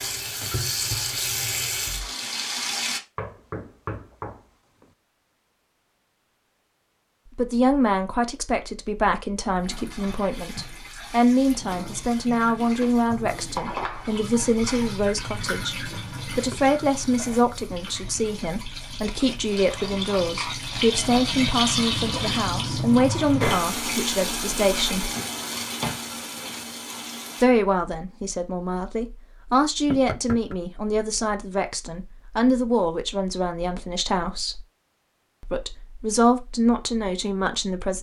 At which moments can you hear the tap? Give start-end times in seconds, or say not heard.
0.0-3.0, 9.6-27.4.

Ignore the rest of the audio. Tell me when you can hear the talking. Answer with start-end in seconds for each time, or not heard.
7.3-25.1, 27.4-34.6, 35.4-37.9.